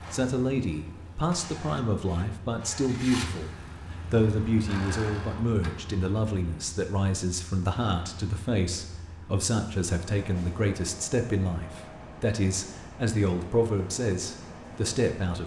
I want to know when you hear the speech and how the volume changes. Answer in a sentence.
The speech can be heard from 0.1 to 15.4 s, at a steady volume.